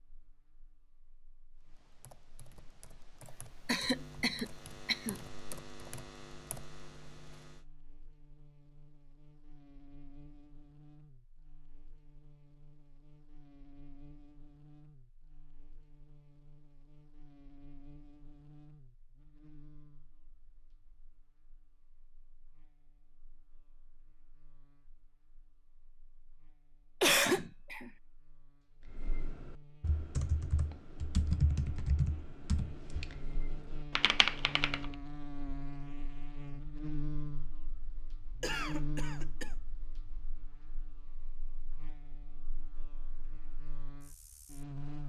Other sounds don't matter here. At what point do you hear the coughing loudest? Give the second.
27 s.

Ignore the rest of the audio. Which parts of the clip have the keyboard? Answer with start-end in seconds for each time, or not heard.
1.6-7.6, 28.9-34.9.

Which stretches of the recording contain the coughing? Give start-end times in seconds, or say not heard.
3.6-5.2, 27.0-27.9, 38.4-39.5.